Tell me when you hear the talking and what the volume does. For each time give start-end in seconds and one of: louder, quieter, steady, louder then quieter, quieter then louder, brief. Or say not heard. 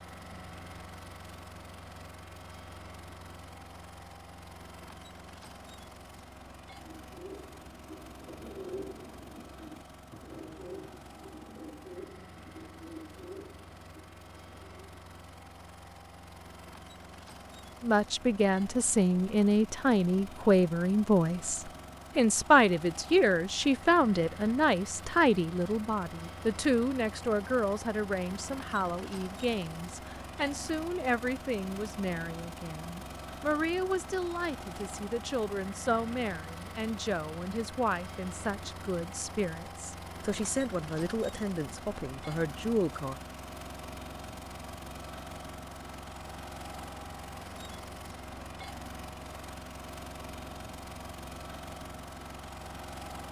17.8-43.1 quieter.